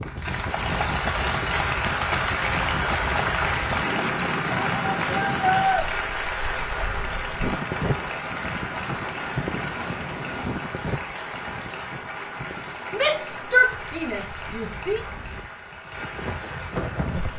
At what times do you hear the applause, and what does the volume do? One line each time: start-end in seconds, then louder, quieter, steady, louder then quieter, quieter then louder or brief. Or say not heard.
0.0-17.3 quieter.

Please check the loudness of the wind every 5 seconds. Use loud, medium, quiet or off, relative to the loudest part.
loud, loud, medium, loud.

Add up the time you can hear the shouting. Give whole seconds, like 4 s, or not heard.
3 s.